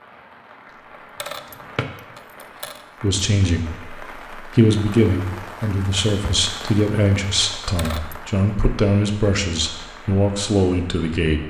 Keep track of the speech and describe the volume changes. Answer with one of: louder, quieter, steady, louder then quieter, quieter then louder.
steady.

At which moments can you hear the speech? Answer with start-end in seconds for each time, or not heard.
3.0-11.4.